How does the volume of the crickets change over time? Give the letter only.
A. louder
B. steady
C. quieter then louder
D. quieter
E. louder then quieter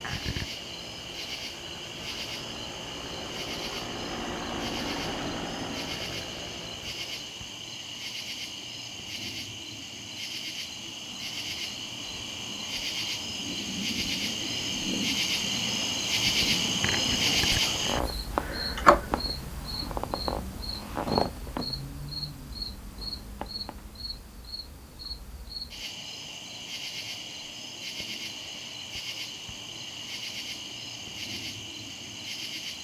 E.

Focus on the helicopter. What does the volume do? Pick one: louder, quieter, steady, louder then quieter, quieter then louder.
louder then quieter.